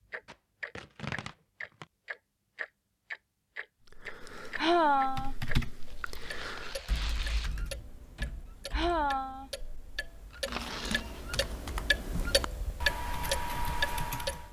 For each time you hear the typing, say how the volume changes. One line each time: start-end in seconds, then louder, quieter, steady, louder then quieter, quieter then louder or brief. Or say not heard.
3.9-14.4 quieter then louder.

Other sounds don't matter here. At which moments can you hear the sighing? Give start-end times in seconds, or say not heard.
4.5-5.3, 8.7-9.5.